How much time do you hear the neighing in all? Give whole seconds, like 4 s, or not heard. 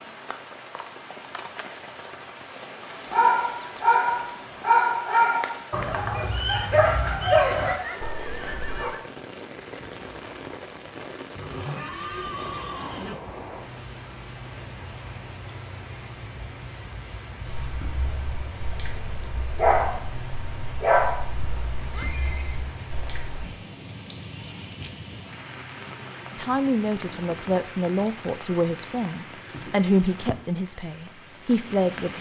4 s.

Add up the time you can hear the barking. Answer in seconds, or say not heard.
12 s.